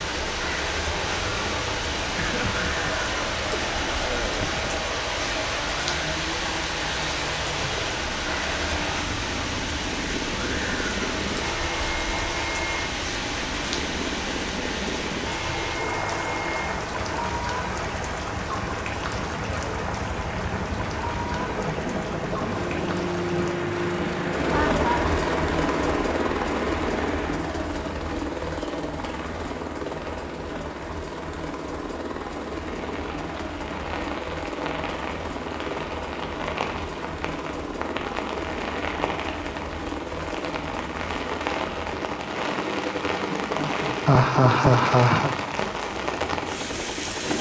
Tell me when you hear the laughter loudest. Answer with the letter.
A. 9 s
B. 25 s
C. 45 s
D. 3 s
C.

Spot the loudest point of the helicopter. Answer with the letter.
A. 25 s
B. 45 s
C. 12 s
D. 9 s
A.